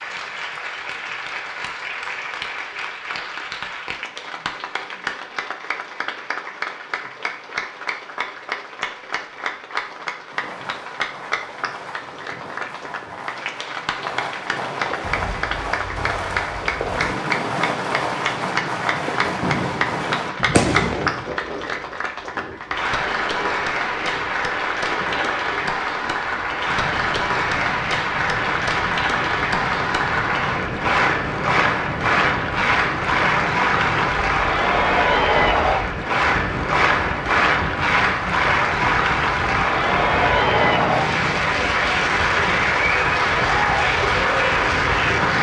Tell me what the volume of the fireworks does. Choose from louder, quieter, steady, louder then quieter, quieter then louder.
louder.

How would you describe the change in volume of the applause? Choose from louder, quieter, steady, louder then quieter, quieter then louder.
louder.